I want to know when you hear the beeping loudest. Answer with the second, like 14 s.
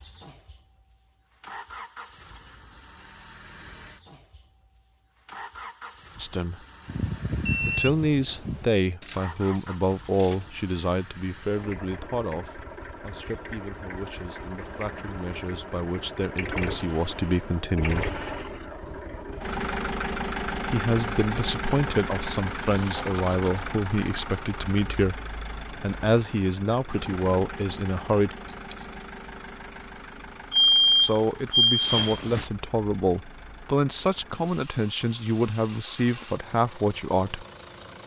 31 s.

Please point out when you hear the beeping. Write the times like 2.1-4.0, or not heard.
6.8-8.7, 30.5-32.5.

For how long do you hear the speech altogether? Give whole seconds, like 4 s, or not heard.
25 s.